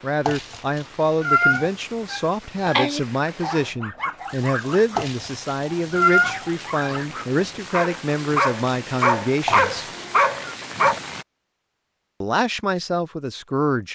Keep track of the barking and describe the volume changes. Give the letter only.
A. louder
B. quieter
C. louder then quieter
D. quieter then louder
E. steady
D.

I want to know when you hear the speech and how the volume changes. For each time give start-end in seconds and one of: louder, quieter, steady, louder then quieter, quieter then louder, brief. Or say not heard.
0.0-9.8 steady
12.2-13.9 brief.